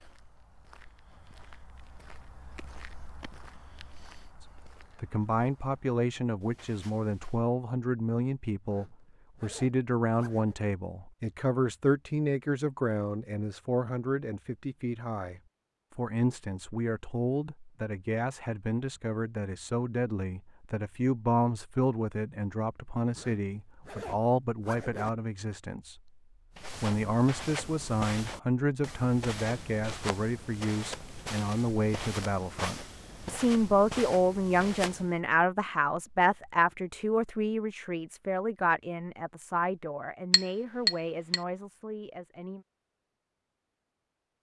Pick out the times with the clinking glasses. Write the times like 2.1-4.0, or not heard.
40.3-41.4.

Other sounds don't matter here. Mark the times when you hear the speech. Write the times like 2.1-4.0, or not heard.
4.4-26.1, 26.8-42.6.